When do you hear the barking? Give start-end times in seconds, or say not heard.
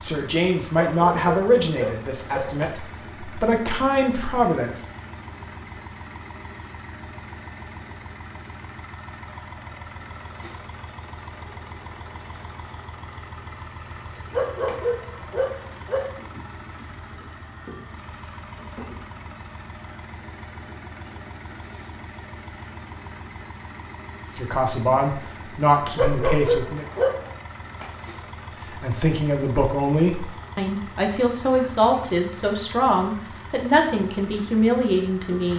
0.8-2.5, 14.3-16.1, 25.9-27.3.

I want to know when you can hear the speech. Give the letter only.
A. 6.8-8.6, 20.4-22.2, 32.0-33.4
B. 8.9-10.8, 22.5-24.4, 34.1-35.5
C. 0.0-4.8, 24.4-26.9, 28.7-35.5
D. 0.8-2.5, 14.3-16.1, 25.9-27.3
C.